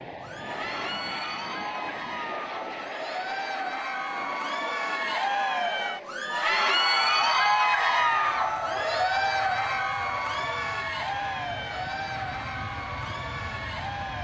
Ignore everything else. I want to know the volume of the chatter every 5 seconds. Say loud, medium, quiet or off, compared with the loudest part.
medium, loud, medium.